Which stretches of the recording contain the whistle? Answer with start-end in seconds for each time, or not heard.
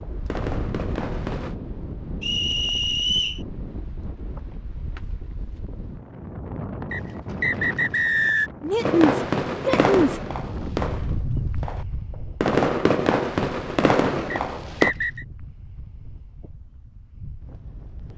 2.2-3.4, 6.9-8.5, 14.3-15.2.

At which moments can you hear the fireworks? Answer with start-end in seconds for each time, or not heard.
0.0-1.6, 8.8-14.9.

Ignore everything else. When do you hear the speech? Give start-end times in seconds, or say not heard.
8.6-10.2.